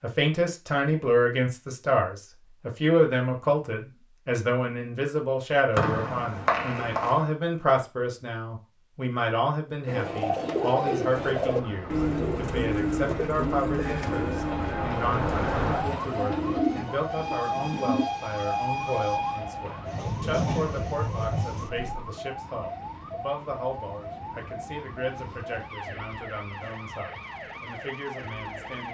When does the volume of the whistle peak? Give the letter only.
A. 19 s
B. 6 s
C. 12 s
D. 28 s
B.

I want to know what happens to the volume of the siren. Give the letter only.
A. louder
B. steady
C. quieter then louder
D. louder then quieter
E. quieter
D.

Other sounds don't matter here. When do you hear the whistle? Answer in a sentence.
You can hear the whistle from 5.8 to 7.2 s.